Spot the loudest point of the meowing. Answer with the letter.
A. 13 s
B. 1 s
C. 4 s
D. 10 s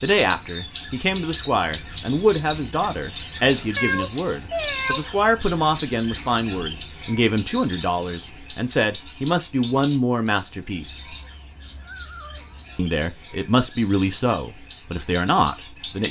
C.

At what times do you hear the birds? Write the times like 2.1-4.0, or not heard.
0.0-16.0.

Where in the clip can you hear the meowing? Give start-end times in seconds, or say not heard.
3.8-5.5, 10.8-12.8.